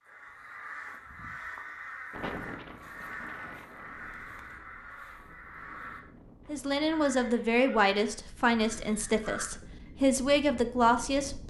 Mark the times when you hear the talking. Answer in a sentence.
The talking can be heard from 6.5 to 11.4 s.